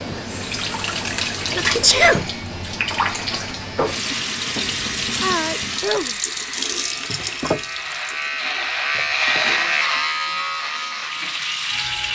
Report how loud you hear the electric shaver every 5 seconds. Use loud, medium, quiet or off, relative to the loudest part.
medium, loud, loud.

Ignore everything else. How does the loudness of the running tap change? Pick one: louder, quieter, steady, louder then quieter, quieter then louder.
quieter.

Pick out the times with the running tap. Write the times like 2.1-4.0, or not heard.
0.0-12.1.